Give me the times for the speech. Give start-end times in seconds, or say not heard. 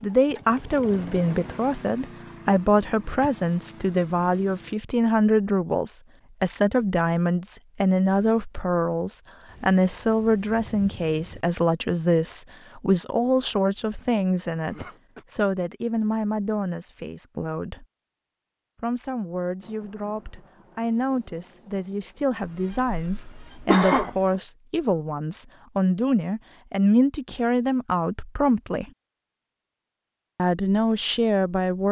0.0-17.9, 18.8-28.9, 30.4-31.8.